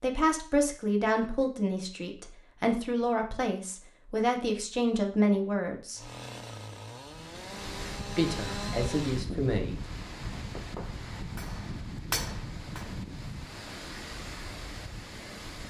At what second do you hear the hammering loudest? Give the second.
12 s.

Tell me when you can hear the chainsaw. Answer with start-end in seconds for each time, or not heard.
6.0-9.2.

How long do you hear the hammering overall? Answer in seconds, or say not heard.
3 s.